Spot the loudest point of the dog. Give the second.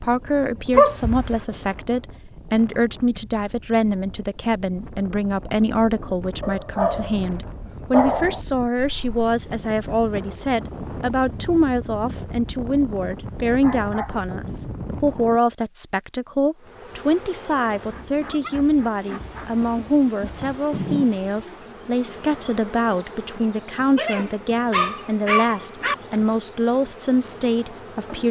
1 s.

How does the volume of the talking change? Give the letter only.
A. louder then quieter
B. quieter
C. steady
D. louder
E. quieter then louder
C.